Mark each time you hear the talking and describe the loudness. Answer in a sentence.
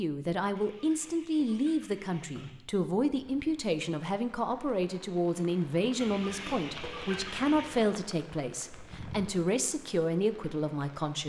You can hear the talking from 0.0 to 11.2 s, at a steady volume.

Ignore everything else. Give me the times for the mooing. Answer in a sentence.
You can't hear the mooing here.